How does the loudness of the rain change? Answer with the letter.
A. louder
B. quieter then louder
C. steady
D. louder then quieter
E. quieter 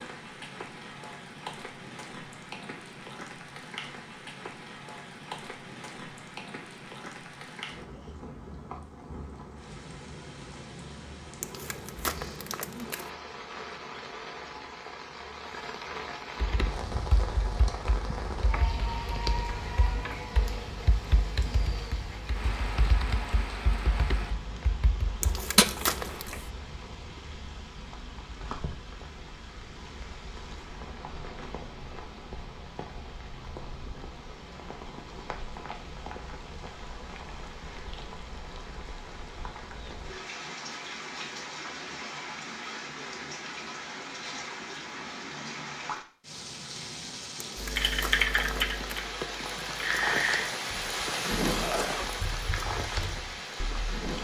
A.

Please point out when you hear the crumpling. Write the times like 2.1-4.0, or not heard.
11.4-13.1, 25.2-26.4, 47.4-49.1.